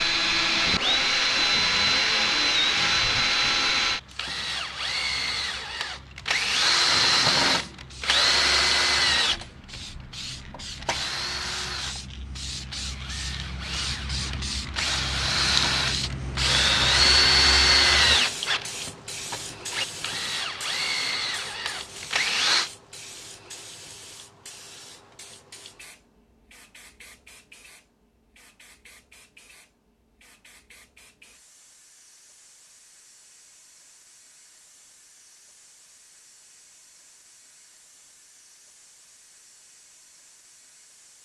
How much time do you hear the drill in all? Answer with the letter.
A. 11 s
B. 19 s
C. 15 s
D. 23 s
D.